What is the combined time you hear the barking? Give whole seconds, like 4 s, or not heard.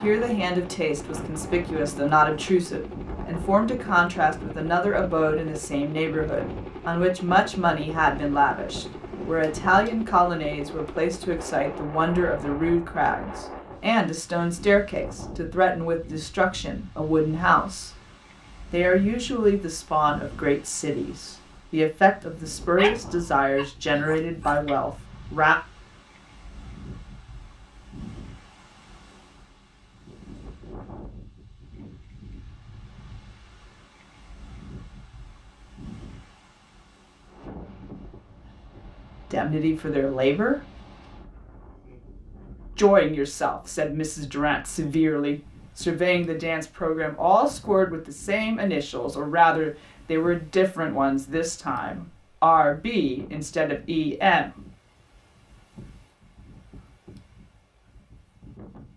2 s.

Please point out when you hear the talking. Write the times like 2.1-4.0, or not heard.
0.0-17.9, 18.7-25.6, 39.3-40.6, 42.8-54.5.